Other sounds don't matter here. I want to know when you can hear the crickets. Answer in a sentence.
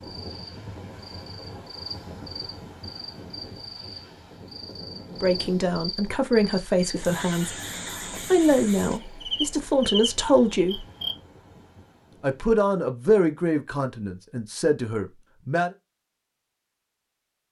The crickets can be heard from 0.0 to 11.2 s.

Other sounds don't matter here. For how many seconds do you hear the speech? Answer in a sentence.
You can hear the speech for 9 seconds altogether.